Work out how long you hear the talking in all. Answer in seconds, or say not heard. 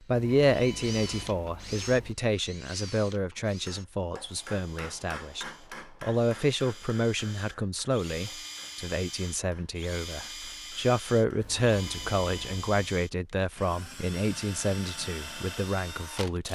16 s.